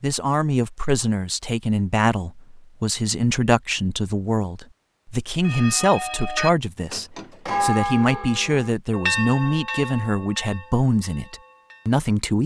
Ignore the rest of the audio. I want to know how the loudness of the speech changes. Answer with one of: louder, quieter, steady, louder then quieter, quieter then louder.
steady.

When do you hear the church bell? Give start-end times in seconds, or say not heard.
5.4-12.0.